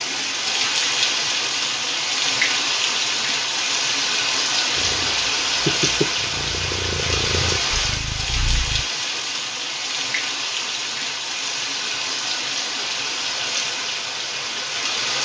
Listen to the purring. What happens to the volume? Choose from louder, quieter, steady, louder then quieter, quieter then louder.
quieter.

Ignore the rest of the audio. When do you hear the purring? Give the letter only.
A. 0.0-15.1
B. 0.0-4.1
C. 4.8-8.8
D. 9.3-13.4
C.